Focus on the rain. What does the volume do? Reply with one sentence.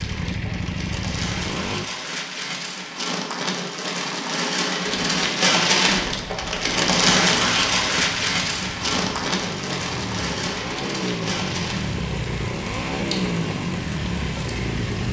The volume of the rain goes up, then down.